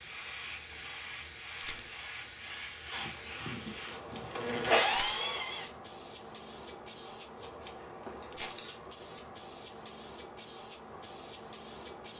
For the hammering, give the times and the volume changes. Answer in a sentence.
You can't hear the hammering here.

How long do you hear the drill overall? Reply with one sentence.
You can hear the drill for 3 seconds altogether.